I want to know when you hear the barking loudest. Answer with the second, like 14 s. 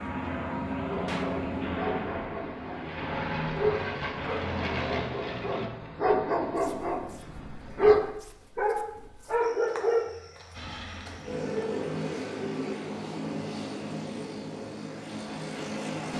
8 s.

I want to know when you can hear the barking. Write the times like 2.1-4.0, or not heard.
0.8-10.1.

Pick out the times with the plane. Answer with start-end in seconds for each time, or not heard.
0.0-5.7, 10.5-16.1.